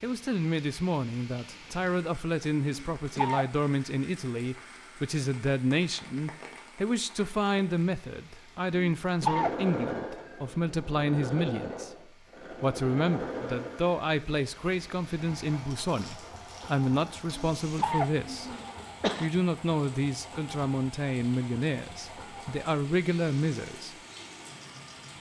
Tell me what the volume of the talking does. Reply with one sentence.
The volume of the talking stays about the same.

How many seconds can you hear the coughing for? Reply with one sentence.
The coughing can be heard for 4 seconds in total.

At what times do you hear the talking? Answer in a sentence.
The talking can be heard from 0.0 to 18.6 s and from 19.2 to 23.9 s.